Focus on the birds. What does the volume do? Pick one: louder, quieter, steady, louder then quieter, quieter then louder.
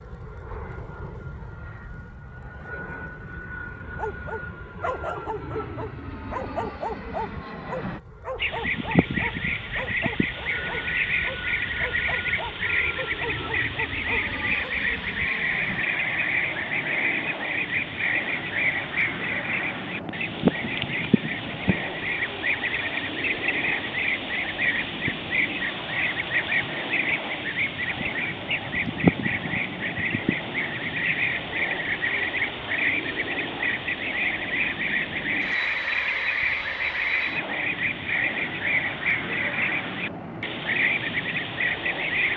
steady.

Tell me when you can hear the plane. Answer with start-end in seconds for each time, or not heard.
0.0-42.3.